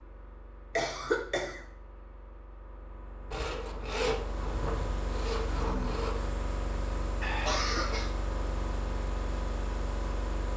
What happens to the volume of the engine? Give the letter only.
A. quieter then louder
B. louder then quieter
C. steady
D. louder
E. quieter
D.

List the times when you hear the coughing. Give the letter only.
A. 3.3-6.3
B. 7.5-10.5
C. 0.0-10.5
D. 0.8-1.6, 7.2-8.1
D.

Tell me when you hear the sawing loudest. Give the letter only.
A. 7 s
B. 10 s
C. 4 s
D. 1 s
C.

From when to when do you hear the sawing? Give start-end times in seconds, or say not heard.
3.3-6.3.